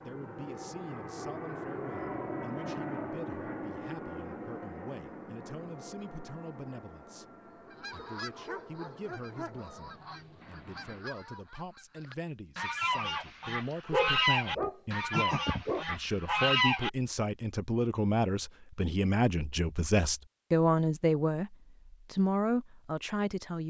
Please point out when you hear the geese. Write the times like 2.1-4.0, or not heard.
7.6-16.9.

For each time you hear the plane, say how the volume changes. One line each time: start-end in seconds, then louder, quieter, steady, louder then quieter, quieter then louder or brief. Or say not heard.
0.0-11.1 quieter.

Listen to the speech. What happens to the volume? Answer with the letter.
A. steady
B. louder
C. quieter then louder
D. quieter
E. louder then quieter
B.